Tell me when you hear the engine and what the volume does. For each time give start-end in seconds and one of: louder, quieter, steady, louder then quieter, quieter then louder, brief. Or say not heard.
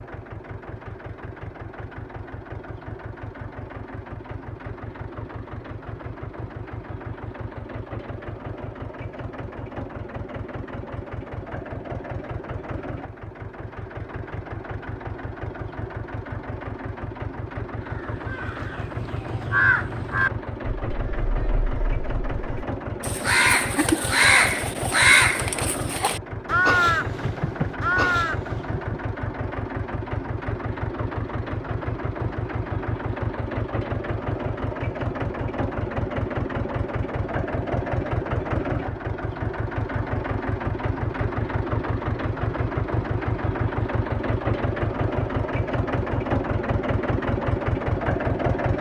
0.0-48.7 louder.